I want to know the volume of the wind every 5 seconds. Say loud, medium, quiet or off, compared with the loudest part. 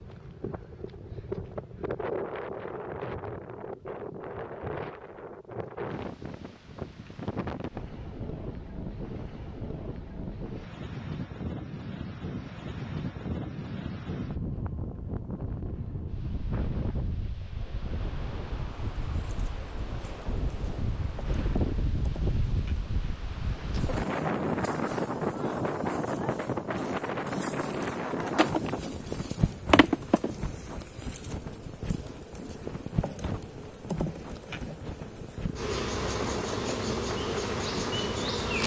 medium, medium, medium, medium, loud, loud, medium, medium.